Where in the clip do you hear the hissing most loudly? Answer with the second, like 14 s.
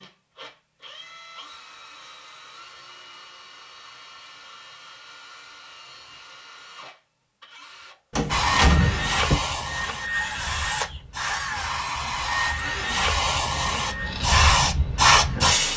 15 s.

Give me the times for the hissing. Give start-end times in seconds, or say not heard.
8.3-15.7.